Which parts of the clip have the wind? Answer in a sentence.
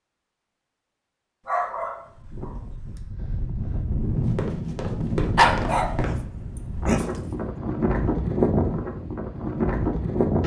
The wind can be heard from 2.1 to 10.4 s.